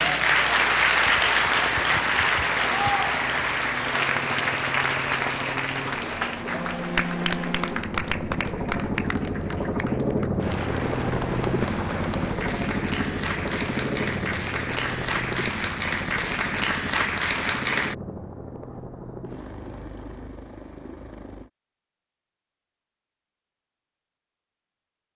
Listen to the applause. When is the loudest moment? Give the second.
1 s.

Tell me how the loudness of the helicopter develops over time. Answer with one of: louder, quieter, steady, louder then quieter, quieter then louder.
louder then quieter.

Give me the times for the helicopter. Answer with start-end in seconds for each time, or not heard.
0.0-21.5.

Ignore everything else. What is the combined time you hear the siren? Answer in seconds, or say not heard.
not heard.